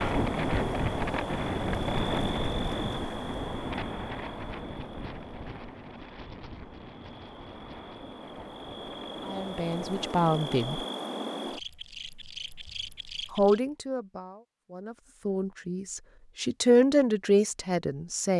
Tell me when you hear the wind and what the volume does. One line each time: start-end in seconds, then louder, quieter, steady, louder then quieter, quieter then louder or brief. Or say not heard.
0.0-10.1 quieter.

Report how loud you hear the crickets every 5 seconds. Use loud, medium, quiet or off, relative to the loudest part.
loud, medium, loud, off.